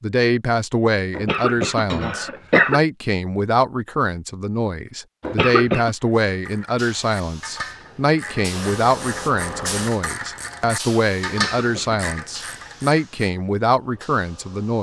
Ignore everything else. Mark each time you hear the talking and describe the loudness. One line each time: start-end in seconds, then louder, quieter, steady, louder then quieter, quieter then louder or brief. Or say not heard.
0.0-14.7 steady.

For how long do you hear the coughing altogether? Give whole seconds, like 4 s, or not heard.
3 s.